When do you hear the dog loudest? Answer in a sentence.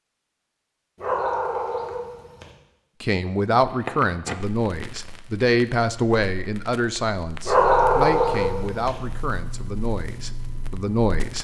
The loudest moment of the dog is at 8 seconds.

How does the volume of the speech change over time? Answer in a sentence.
The loudness of the speech goes down.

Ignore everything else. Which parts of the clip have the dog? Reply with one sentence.
You can hear the dog from 1.0 to 2.5 s and from 7.5 to 8.9 s.